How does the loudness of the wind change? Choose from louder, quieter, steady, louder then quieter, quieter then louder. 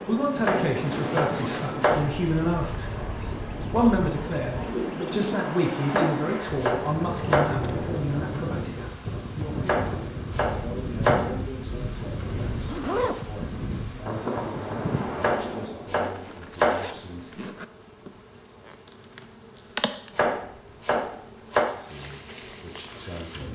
steady.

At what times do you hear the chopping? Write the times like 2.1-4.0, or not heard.
0.4-2.0, 5.9-7.6, 9.7-11.3, 15.2-16.8, 20.1-21.7.